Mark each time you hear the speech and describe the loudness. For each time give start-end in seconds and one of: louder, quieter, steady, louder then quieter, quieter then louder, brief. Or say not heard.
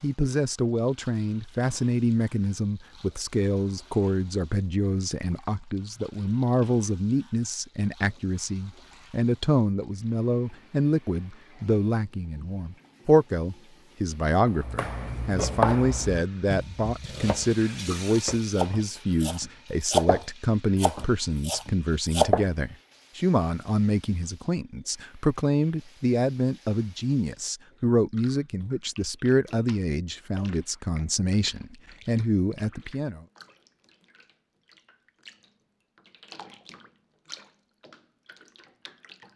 0.0-33.2 steady.